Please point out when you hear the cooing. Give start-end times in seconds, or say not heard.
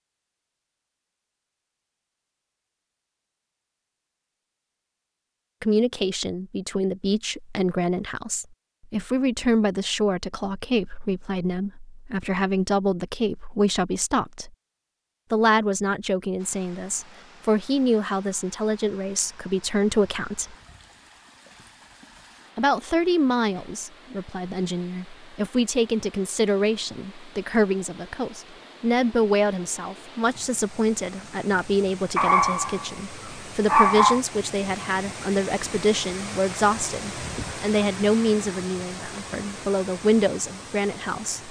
not heard.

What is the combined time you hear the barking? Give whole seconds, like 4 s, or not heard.
2 s.